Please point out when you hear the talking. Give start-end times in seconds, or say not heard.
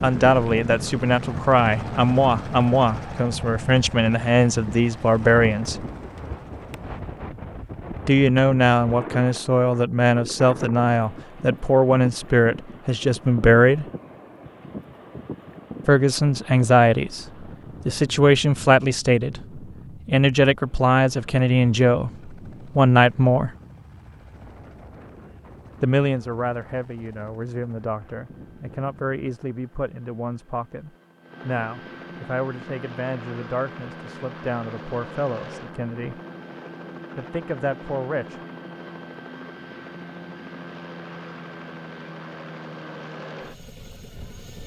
0.0-5.8, 8.1-13.8, 15.8-17.2, 17.9-23.5, 25.8-36.1, 37.1-38.4.